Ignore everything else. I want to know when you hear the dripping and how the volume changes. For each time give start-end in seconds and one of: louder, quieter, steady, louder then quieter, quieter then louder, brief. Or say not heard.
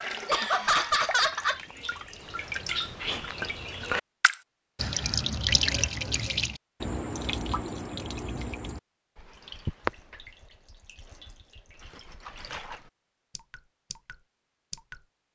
0.0-15.1 louder then quieter.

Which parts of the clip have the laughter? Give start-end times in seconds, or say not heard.
0.2-1.6.